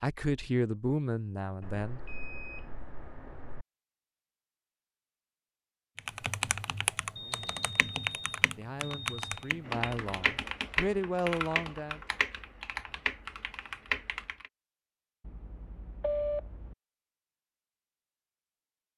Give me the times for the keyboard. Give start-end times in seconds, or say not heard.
6.0-14.5.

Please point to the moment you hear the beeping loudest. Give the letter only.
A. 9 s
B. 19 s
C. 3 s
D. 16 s
D.